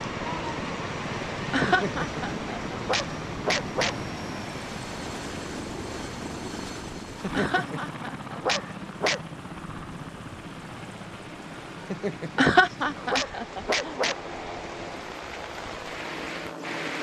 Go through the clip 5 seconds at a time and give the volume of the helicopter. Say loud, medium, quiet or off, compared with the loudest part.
loud, loud, medium, loud.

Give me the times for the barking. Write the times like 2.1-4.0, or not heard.
1.6-4.0, 7.2-9.2, 11.8-14.2.